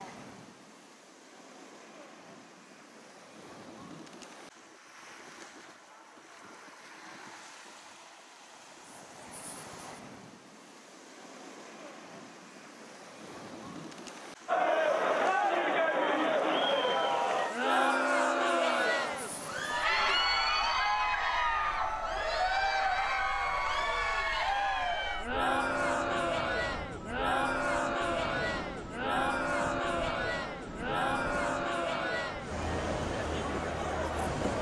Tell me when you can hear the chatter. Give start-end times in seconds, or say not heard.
14.4-34.5.